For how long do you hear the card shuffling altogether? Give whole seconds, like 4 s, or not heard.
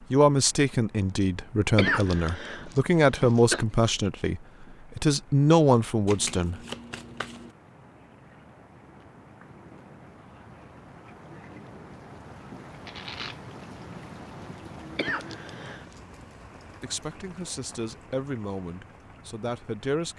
2 s.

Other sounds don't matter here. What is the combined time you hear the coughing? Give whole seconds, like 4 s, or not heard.
3 s.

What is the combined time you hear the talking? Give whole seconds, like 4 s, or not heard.
10 s.